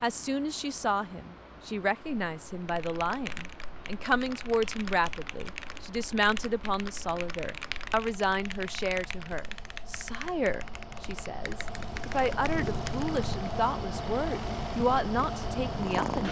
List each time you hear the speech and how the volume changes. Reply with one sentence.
You can hear the speech from 0.0 to 16.2 s, at a steady volume.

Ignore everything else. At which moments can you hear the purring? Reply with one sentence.
You can hear the purring from 11.6 to 16.2 s.